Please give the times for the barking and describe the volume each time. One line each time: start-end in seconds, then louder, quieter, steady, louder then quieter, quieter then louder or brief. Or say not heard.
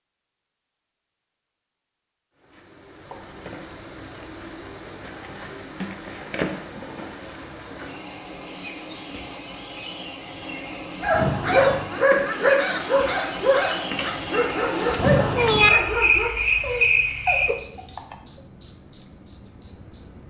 11.0-17.9 quieter.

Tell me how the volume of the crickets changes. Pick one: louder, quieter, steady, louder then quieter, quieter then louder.
louder.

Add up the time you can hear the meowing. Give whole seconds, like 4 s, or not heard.
2 s.